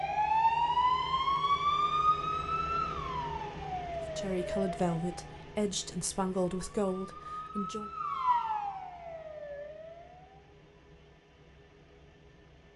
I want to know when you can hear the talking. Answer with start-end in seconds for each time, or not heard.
4.2-7.9.